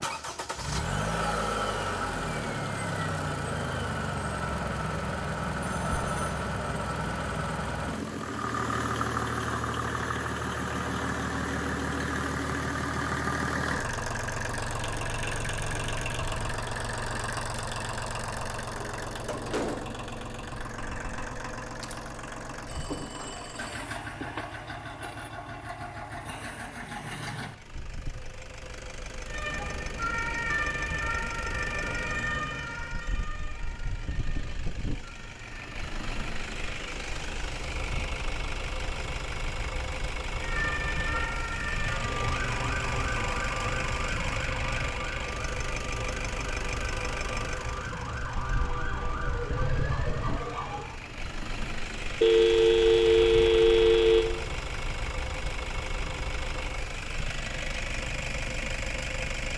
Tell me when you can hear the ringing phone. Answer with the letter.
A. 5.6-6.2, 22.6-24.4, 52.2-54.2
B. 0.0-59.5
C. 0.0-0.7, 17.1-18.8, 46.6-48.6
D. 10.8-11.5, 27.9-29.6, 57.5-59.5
A.